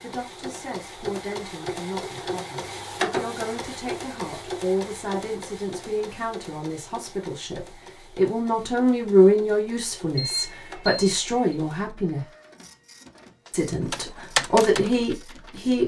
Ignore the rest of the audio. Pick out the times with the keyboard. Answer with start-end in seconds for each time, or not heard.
13.4-15.8.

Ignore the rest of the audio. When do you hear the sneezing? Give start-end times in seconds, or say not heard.
not heard.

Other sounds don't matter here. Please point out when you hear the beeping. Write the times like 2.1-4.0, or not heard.
10.2-11.6.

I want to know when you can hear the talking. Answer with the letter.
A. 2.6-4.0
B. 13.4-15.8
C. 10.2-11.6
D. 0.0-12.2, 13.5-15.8
D.